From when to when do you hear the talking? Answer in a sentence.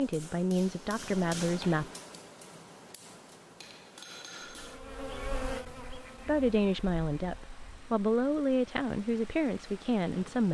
The talking can be heard from 0.0 to 1.9 s and from 6.2 to 10.4 s.